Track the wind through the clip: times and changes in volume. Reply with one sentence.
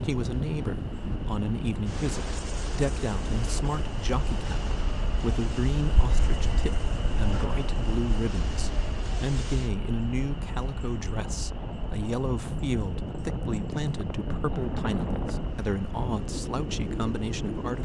You can hear the wind from 0.0 to 17.8 s, getting quieter then louder.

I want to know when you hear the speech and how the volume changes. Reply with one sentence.
The speech can be heard from 0.0 to 17.8 s, at a steady volume.